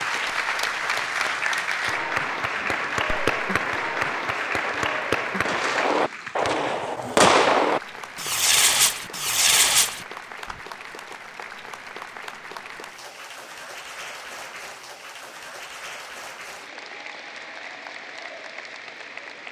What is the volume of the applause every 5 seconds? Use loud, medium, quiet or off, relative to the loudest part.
loud, medium, quiet, quiet.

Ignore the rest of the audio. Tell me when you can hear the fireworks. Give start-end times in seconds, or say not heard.
2.5-10.6.